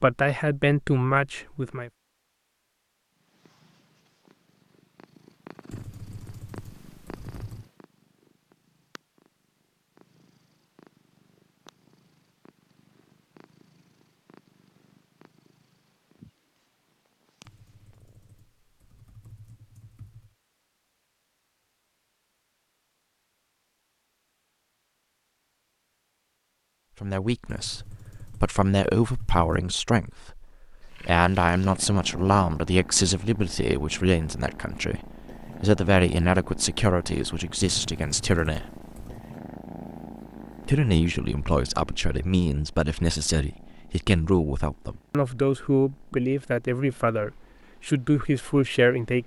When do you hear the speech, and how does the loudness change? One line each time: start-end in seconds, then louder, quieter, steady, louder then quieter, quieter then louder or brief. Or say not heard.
0.0-1.9 brief
27.0-38.6 steady
40.6-49.2 steady.